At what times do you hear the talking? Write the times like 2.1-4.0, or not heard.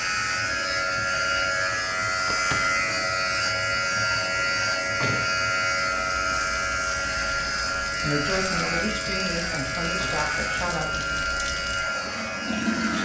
8.0-11.1.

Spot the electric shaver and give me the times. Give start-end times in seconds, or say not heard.
0.0-13.0.